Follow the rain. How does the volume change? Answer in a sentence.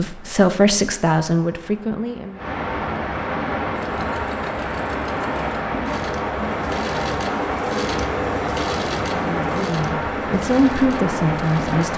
The volume of the rain goes up.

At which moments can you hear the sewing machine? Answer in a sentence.
The sewing machine can be heard from 3.7 to 11.9 s.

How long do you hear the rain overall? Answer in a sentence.
You can hear the rain for 12 seconds altogether.